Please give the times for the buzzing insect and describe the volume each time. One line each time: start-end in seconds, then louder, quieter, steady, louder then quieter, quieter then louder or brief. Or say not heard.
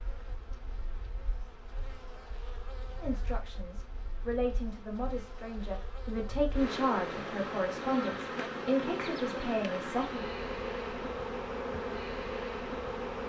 0.0-13.2 louder.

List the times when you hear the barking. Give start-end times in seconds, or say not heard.
not heard.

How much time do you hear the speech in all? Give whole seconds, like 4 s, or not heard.
7 s.